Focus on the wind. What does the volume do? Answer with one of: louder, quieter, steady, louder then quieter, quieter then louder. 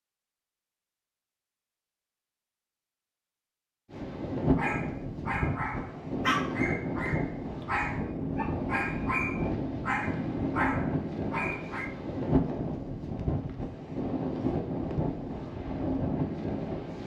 steady.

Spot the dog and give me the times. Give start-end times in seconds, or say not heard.
4.5-11.9.